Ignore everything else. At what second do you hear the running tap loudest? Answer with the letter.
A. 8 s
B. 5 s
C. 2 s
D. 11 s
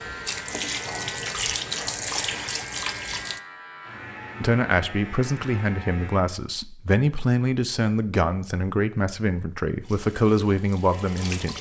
C.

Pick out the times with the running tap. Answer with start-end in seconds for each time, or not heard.
0.0-3.4, 9.8-11.5.